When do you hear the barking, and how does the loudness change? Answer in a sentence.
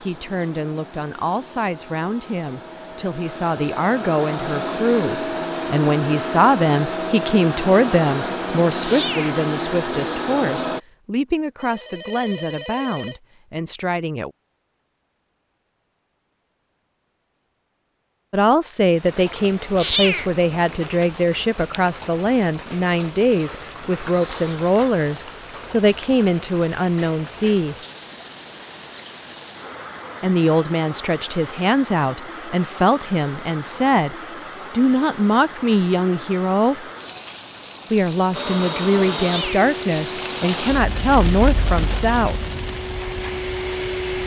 You can't hear the barking here.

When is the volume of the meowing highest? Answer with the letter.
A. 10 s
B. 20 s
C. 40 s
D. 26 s
B.